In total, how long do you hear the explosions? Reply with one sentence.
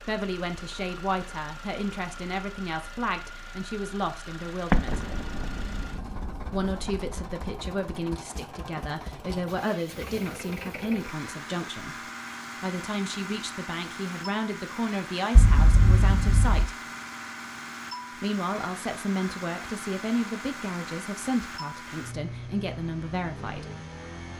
You can hear the explosions for 4 seconds altogether.